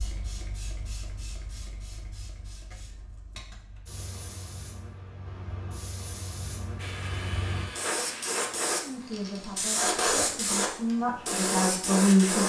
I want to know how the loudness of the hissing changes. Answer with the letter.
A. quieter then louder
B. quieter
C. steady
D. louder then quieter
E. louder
E.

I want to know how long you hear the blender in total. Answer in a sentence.
You can hear the blender for 2 seconds altogether.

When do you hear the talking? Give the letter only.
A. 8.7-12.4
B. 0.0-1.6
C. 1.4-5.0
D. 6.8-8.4
A.